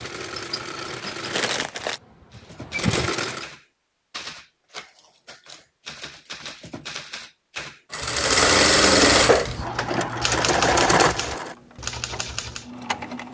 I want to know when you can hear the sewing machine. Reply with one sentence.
You can hear the sewing machine from 0.0 to 3.5 s and from 7.9 to 13.2 s.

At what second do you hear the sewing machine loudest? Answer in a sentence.
The loudest moment of the sewing machine is at 9 seconds.